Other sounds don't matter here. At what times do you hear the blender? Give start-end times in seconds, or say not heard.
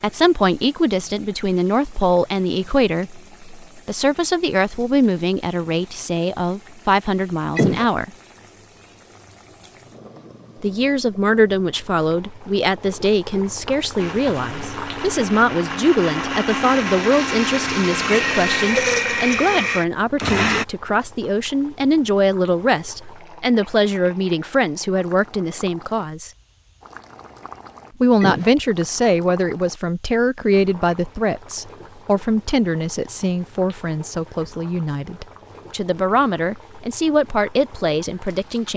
13.9-20.6.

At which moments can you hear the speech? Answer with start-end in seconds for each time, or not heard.
0.0-8.1, 10.6-26.3, 28.0-38.7.